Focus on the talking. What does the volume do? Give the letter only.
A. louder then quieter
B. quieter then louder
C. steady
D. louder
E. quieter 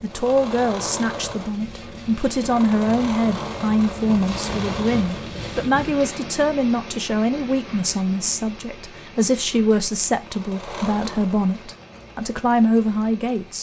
C.